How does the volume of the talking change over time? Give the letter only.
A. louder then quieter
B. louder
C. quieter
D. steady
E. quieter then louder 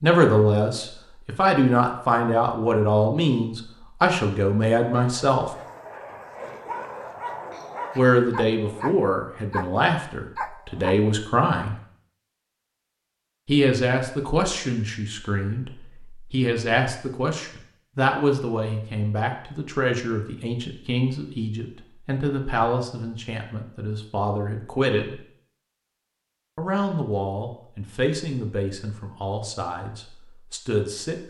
C.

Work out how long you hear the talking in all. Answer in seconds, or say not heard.
26 s.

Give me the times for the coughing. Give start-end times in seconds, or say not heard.
not heard.